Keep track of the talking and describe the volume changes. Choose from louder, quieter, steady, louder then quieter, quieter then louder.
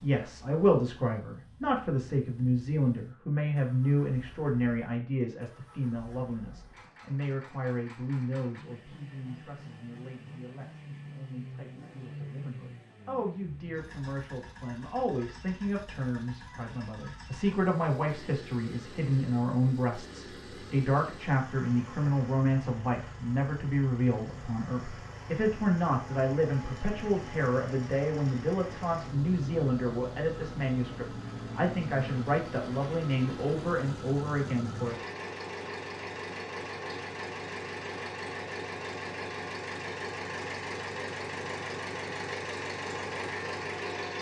quieter then louder.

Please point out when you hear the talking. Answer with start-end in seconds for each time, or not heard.
0.0-35.0.